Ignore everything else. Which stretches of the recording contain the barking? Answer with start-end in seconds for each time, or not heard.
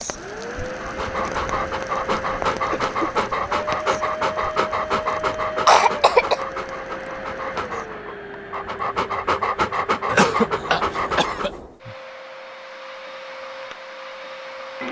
0.8-11.6.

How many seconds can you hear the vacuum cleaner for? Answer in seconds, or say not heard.
15 s.